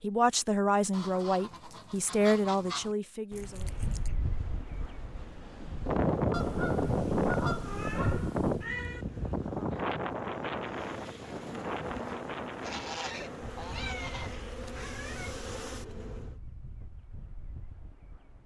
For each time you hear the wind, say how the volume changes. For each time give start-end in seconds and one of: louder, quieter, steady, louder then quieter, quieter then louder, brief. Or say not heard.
3.5-18.4 quieter.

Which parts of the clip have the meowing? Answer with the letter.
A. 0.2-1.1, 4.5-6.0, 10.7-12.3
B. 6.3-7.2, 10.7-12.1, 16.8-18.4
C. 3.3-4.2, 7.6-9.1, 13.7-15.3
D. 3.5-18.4
C.